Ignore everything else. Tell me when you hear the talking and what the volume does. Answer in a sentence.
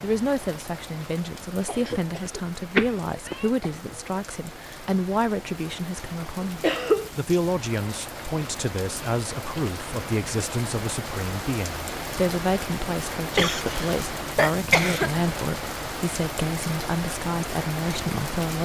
You can hear the talking from 0.0 to 18.5 s, at a steady volume.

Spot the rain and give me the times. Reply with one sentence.
The rain can be heard from 0.0 to 18.5 s.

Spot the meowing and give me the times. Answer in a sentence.
You can hear the meowing from 2.8 to 3.5 s.